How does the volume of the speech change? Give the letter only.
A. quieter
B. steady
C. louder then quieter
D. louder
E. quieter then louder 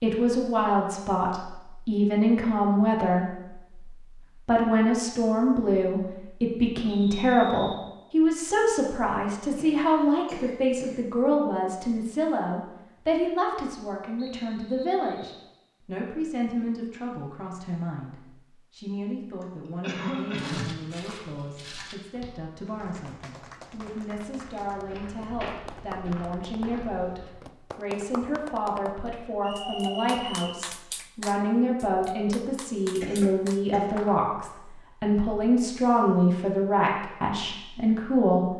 E.